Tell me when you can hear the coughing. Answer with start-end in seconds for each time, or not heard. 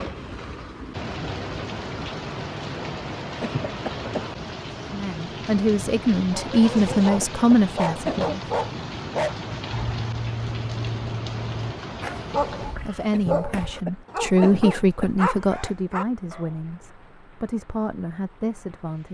3.4-4.3, 7.0-8.4, 13.1-15.2.